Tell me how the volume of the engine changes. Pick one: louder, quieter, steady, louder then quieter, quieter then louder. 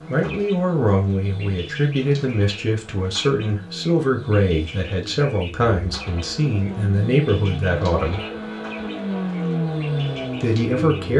louder.